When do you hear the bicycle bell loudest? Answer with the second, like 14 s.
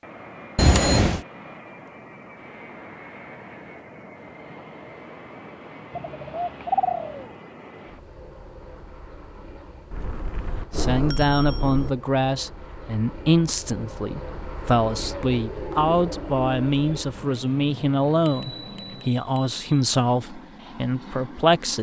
1 s.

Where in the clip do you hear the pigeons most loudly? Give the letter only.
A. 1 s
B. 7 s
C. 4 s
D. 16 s
B.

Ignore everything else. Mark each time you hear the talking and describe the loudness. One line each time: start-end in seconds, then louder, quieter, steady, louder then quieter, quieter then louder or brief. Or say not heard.
10.8-21.7 steady.